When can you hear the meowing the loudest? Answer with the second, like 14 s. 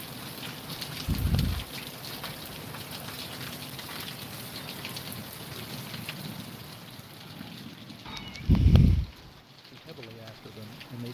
9 s.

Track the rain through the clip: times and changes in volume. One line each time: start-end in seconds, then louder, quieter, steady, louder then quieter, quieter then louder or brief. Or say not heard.
0.0-11.0 quieter.